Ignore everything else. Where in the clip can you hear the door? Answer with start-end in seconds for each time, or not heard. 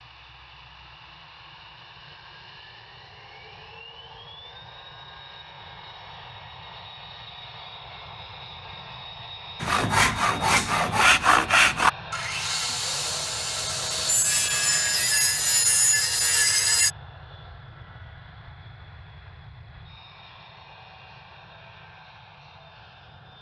not heard.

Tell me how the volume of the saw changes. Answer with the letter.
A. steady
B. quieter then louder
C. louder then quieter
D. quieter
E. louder
B.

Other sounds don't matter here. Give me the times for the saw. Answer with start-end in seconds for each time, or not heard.
9.6-16.9.